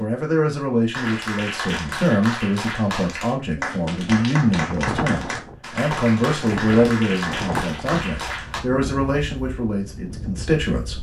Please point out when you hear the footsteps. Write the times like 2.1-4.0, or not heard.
not heard.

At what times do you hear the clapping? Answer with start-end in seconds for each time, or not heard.
0.9-8.6.